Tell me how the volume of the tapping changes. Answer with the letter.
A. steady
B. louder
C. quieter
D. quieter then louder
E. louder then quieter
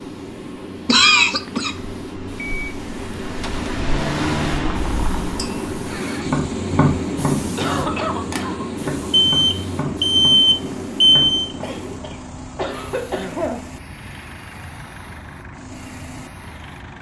C.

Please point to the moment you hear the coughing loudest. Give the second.
1 s.